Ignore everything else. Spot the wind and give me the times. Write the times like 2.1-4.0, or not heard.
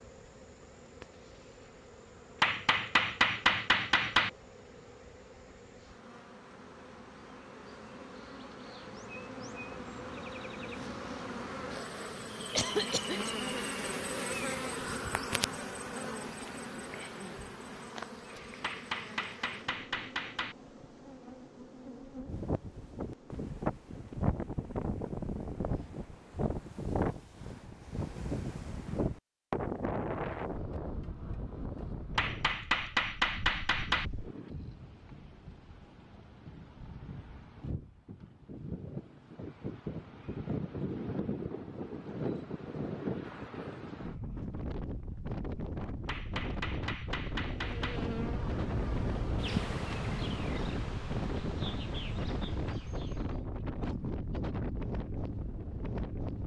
22.2-56.4.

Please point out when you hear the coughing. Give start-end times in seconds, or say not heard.
12.6-13.3.